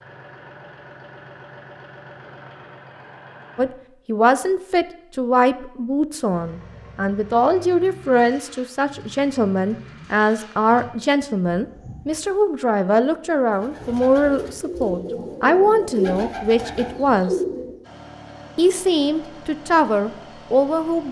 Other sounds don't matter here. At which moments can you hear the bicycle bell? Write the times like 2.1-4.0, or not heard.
not heard.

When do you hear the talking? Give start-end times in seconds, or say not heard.
3.5-17.4, 18.6-21.0.